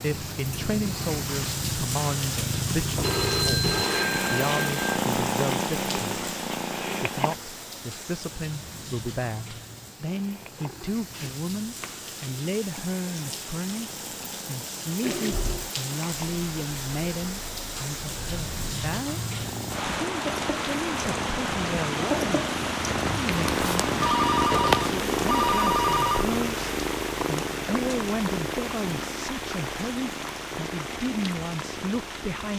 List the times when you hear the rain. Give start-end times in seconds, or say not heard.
0.0-32.5.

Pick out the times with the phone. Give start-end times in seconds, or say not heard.
3.0-4.8, 15.0-15.7, 24.0-26.2.